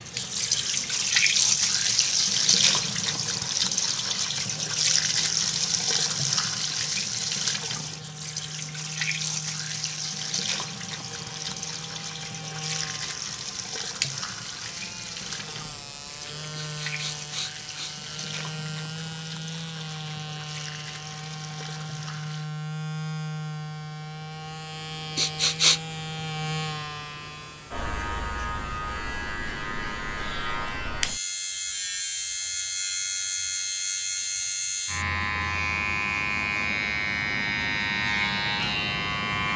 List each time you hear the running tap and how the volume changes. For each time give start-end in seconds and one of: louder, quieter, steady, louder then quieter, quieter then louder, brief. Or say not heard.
0.0-22.5 quieter.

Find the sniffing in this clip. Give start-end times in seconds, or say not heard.
16.6-17.9, 25.1-25.8.